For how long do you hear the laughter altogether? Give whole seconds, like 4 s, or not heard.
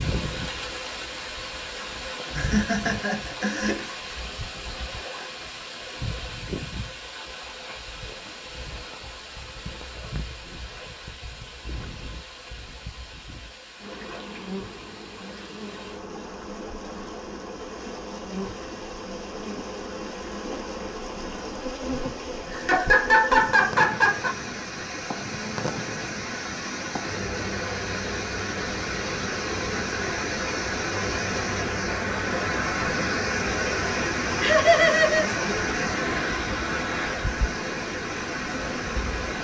5 s.